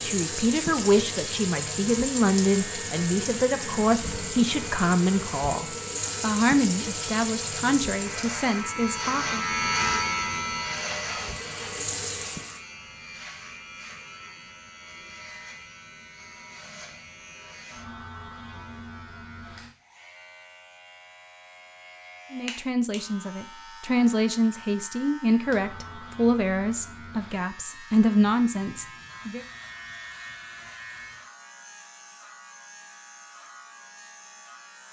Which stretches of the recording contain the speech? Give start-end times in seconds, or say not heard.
0.0-9.4, 22.3-29.4.